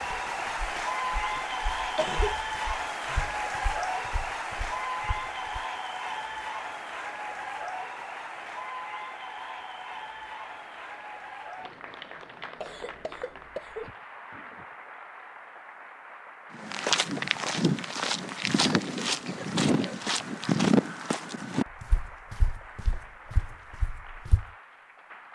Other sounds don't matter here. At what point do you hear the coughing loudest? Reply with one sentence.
The volume of the coughing peaks at 2 seconds.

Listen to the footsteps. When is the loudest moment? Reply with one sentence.
The loudest moment of the footsteps is at 21 seconds.